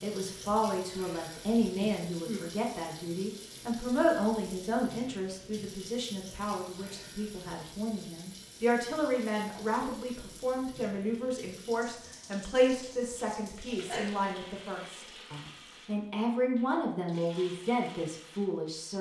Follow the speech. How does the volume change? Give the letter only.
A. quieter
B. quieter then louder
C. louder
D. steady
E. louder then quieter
D.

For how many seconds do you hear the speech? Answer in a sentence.
You can hear the speech for 19 seconds altogether.